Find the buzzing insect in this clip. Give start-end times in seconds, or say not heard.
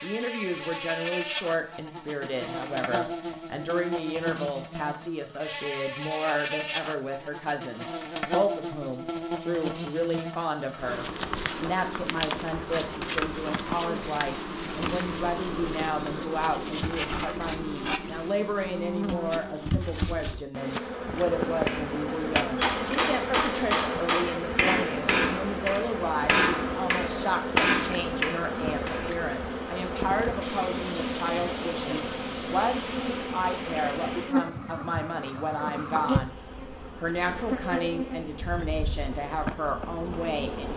0.0-40.7.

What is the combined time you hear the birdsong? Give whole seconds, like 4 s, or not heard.
not heard.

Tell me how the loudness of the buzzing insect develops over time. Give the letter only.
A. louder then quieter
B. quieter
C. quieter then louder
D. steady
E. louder
D.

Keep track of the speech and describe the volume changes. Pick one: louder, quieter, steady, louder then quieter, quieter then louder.
steady.